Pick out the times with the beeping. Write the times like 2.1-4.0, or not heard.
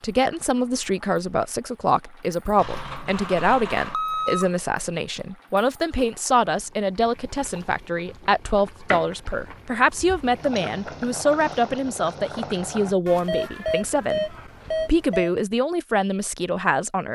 2.5-4.5, 13.1-15.3.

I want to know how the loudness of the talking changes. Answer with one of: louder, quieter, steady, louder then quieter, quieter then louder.
steady.